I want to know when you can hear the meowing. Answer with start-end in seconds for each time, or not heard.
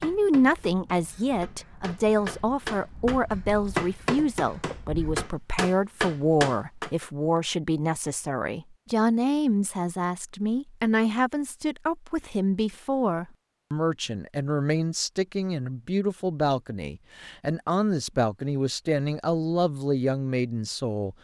not heard.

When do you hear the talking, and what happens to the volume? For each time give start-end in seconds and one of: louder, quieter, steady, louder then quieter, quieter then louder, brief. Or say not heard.
0.0-21.1 steady.